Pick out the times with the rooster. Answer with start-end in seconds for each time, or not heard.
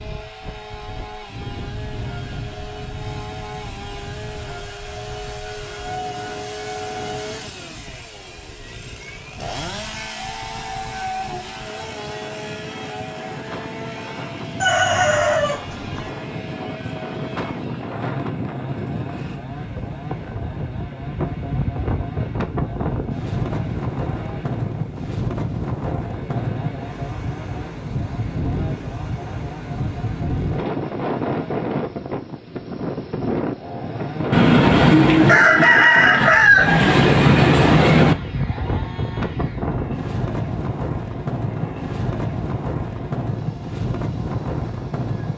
14.6-16.1, 34.3-38.1.